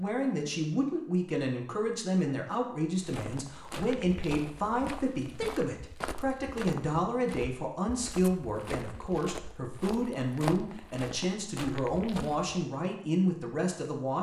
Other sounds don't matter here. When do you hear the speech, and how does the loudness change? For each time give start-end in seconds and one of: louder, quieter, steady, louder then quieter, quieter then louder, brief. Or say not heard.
0.0-14.1 steady.